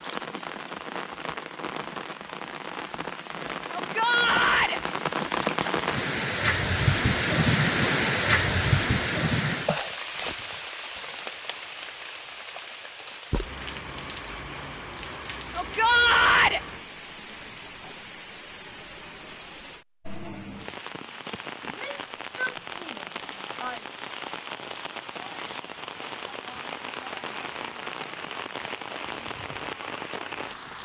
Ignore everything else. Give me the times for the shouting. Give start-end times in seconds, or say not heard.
3.8-4.8, 15.6-16.6, 21.6-23.8.